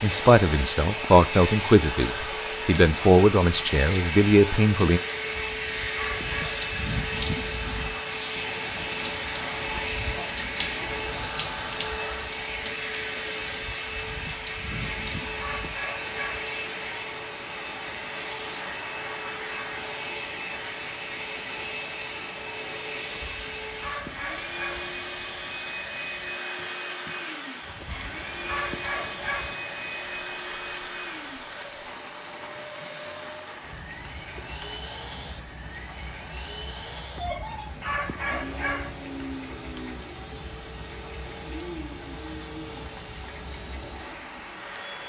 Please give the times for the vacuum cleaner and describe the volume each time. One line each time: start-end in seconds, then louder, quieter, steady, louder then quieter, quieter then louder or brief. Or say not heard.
0.0-45.0 quieter.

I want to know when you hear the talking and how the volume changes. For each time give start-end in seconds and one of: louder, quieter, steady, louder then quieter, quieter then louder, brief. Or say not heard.
0.0-5.0 steady.